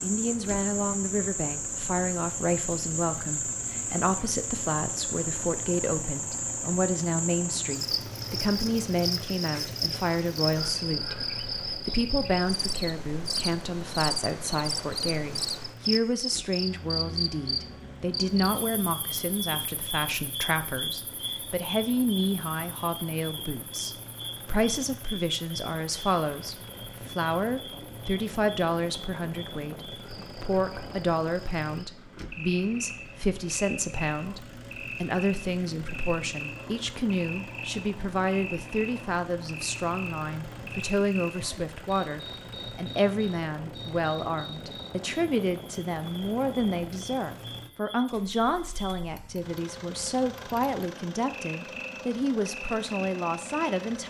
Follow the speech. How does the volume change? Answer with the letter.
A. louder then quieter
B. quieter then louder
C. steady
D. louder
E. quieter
C.